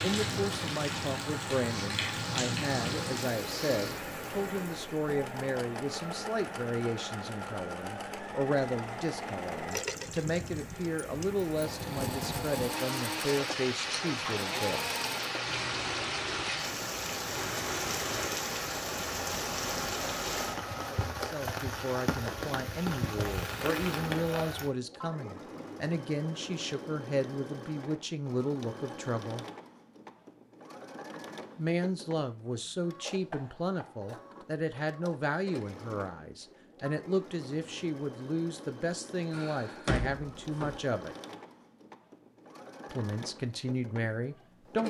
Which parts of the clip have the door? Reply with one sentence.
The door can be heard from 39.3 to 40.8 s.